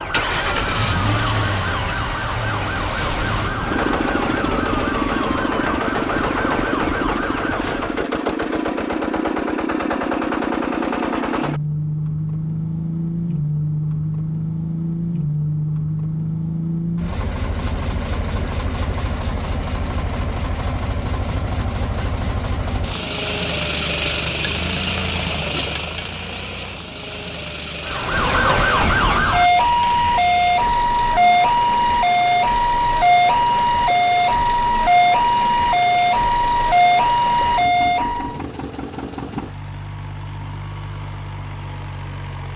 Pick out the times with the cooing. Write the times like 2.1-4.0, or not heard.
not heard.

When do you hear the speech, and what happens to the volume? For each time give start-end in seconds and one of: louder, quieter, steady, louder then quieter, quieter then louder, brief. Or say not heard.
not heard.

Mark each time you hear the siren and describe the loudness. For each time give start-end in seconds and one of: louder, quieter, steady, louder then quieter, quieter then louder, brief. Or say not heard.
0.0-8.1 steady
27.8-38.4 steady.